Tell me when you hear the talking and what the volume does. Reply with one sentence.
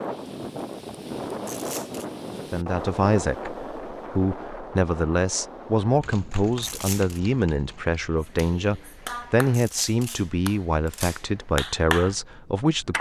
The talking can be heard from 2.5 to 12.9 s, at a steady volume.